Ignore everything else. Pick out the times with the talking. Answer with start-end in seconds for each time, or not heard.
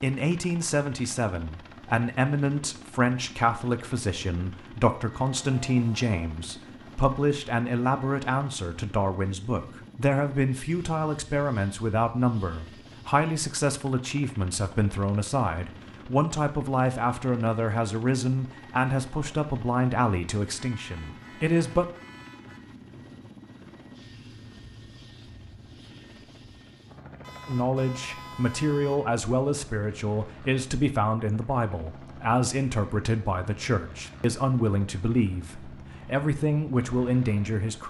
0.0-21.9, 27.4-37.8.